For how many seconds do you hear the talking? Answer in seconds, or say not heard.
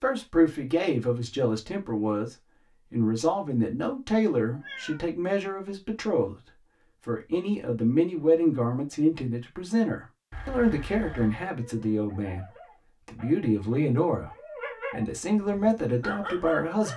16 s.